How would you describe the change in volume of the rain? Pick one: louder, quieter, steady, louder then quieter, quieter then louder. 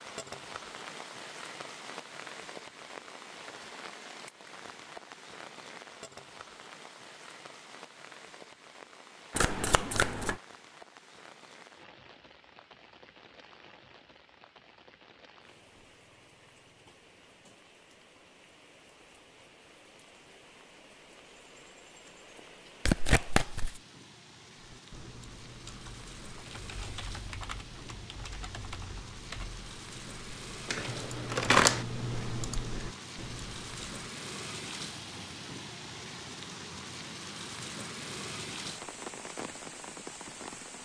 quieter then louder.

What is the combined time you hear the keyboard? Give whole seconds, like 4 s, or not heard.
9 s.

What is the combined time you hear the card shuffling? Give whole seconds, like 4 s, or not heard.
3 s.